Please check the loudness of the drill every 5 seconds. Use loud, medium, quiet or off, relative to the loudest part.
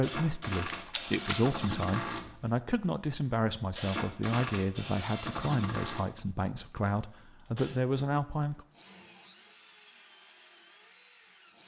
loud, medium, quiet.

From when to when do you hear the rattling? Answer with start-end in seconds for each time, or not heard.
0.7-1.4.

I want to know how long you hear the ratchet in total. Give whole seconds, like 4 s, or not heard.
not heard.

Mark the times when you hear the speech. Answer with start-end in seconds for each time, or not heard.
0.0-8.7.